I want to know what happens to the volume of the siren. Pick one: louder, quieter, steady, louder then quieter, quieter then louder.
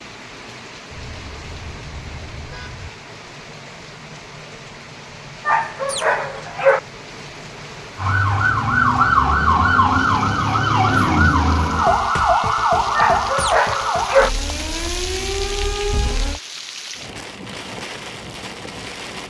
quieter.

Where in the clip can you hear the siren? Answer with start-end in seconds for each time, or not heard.
8.0-16.4.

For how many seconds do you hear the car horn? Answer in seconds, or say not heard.
2 s.